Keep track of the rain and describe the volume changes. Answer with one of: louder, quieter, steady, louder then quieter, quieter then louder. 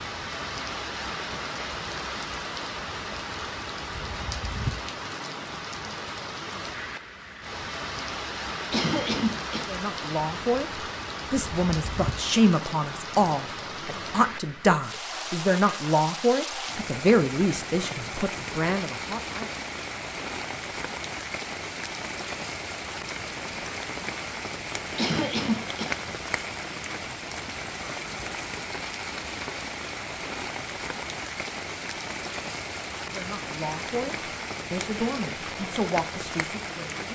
steady.